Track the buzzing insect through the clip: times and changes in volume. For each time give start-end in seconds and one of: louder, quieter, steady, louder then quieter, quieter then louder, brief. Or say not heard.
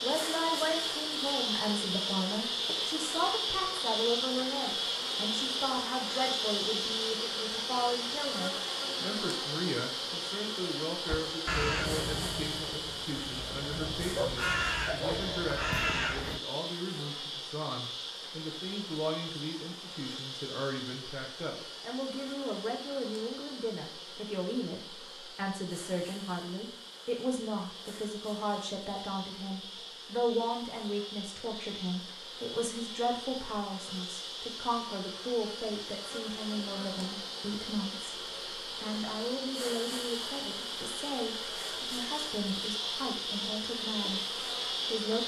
0.0-45.2 quieter then louder.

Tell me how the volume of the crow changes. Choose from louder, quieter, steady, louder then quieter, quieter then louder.
quieter then louder.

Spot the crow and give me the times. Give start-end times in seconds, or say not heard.
11.1-16.4.